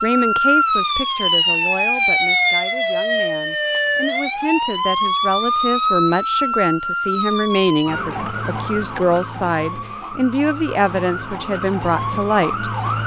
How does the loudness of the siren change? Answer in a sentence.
The loudness of the siren goes down.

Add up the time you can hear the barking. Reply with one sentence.
The barking can't be heard in this clip.